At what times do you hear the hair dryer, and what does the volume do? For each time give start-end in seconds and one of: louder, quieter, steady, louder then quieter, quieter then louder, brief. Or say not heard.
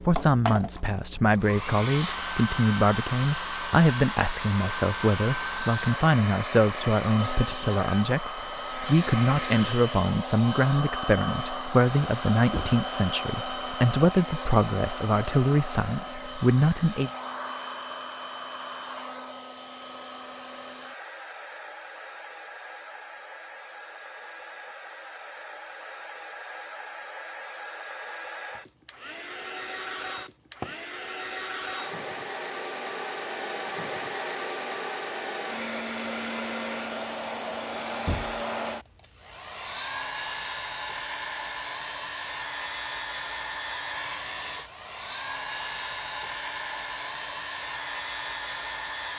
0.0-49.1 quieter then louder.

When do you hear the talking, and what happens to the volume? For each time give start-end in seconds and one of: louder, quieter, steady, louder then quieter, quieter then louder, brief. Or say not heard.
0.1-17.1 steady.